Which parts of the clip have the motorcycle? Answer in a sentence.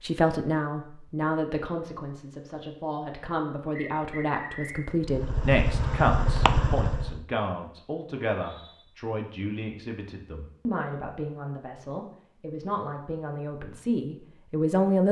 You can hear the motorcycle from 5.0 to 7.2 s.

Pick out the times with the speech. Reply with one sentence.
The speech can be heard from 0.0 to 15.0 s.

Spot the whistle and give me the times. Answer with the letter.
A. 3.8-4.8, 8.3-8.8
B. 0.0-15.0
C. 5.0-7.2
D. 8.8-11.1
A.